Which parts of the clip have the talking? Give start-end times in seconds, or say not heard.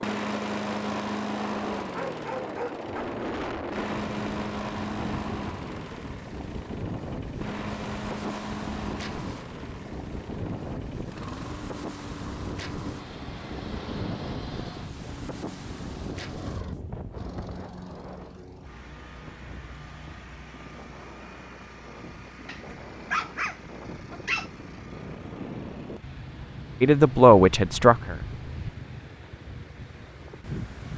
26.8-28.3.